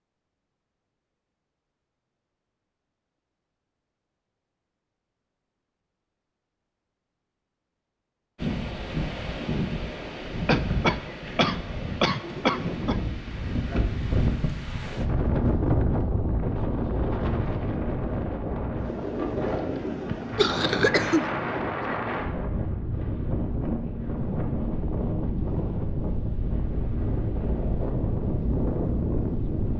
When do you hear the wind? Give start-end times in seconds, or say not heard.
8.3-29.7.